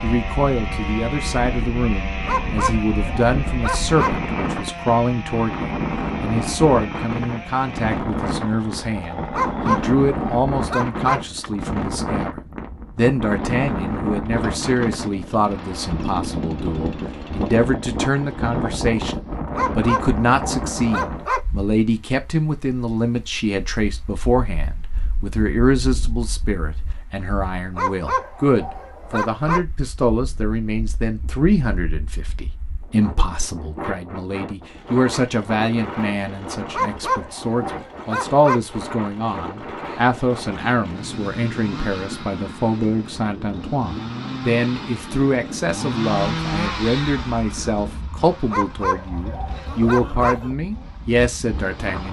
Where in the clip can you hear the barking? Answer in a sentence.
You can hear the barking from 2.2 to 4.2 s, from 9.3 to 11.2 s, from 19.6 to 21.4 s, from 27.8 to 29.6 s, from 36.7 to 38.6 s and from 48.5 to 50.4 s.